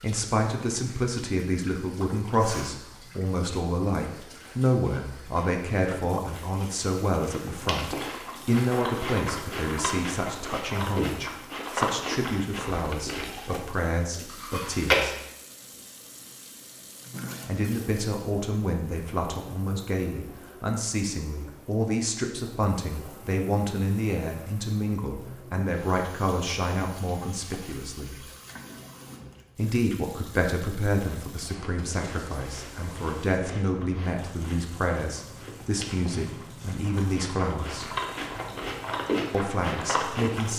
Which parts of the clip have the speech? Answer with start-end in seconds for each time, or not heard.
0.0-15.2, 17.4-28.2, 29.6-37.9, 39.3-40.5.